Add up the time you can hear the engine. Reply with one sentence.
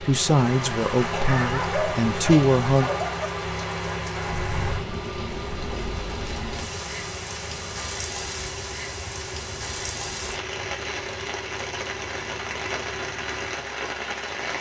The engine can be heard for 14 seconds in total.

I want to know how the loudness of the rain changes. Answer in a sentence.
The loudness of the rain stays about the same.